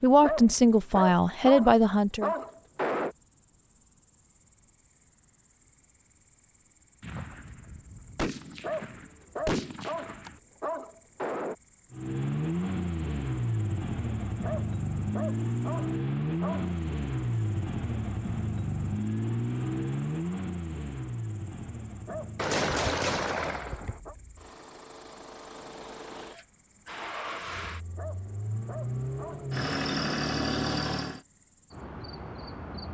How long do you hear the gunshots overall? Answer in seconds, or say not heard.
5 s.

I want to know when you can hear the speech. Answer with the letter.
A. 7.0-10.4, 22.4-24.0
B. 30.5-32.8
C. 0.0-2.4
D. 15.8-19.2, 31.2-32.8
C.